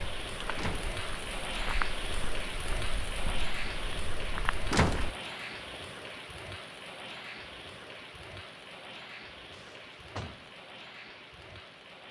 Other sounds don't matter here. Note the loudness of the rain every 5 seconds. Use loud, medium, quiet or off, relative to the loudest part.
loud, medium, medium.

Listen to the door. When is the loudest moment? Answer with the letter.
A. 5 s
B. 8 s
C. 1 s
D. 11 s
A.